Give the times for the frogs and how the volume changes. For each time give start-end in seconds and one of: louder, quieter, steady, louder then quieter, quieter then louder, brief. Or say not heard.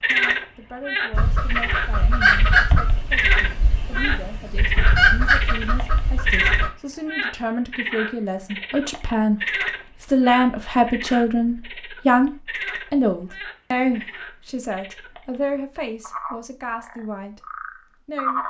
0.0-15.3 quieter
16.0-18.4 brief.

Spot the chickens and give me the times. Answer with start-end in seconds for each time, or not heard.
1.1-6.7.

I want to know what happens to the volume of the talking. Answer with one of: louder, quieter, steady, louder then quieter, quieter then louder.
louder then quieter.